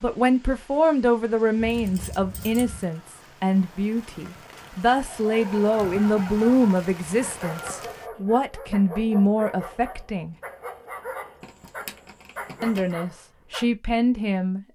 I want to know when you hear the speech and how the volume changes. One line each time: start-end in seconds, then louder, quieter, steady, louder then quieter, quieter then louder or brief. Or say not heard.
0.0-10.3 steady
12.6-14.6 brief.